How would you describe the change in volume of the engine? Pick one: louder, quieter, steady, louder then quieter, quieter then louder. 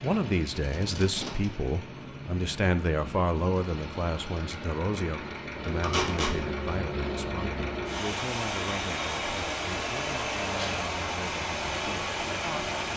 louder.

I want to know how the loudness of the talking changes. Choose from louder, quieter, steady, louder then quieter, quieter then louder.
quieter.